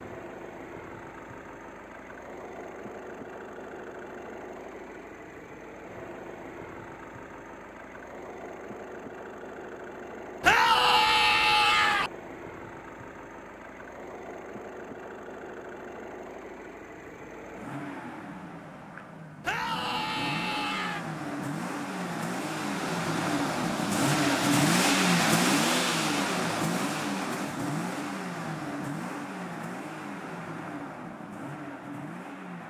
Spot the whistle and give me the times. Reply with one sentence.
The whistle can't be heard in this clip.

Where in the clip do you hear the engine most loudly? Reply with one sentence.
The volume of the engine peaks at 25 seconds.